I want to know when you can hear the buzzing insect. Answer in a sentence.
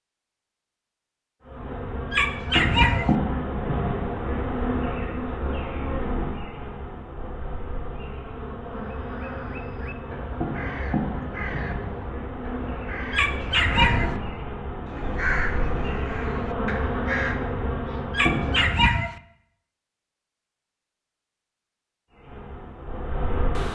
The buzzing insect can be heard from 1.4 to 18.9 s and from 22.1 to 23.7 s.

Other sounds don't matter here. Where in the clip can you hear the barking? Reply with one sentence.
The barking can be heard from 2.1 to 3.1 s, from 13.1 to 14.2 s and from 18.1 to 19.2 s.